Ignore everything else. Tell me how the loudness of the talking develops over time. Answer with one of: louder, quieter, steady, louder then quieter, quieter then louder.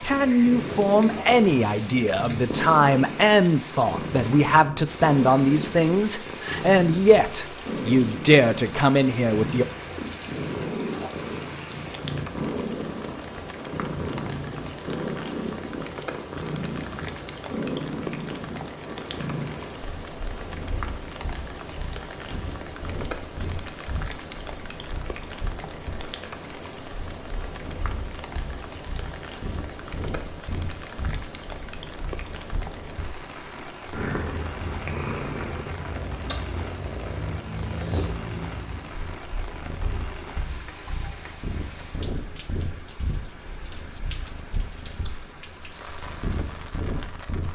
steady.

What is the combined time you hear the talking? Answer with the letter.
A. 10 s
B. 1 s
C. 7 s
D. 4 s
A.